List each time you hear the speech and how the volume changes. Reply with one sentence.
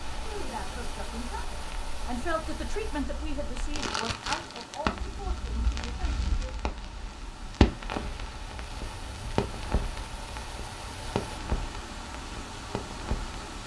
The speech can be heard from 0.2 to 6.5 s, getting louder then quieter.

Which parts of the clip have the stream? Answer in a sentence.
The stream can be heard from 0.0 to 13.6 s.